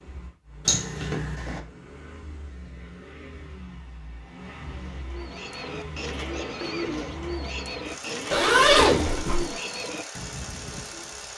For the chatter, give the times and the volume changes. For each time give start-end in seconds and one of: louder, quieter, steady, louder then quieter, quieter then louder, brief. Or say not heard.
not heard.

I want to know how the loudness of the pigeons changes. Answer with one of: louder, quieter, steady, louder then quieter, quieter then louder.
louder then quieter.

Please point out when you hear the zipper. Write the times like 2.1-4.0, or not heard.
0.7-1.6, 8.3-9.5.